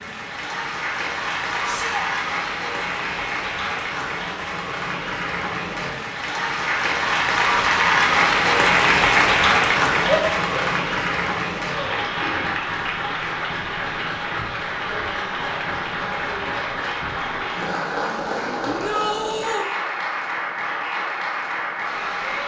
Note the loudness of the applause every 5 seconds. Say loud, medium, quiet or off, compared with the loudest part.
medium, loud, medium, medium, medium.